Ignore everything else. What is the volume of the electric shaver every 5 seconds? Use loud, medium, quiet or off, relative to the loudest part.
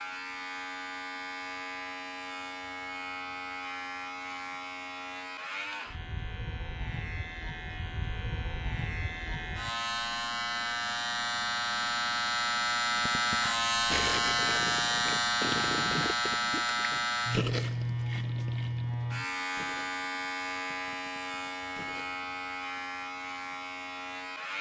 medium, medium, loud, loud, medium.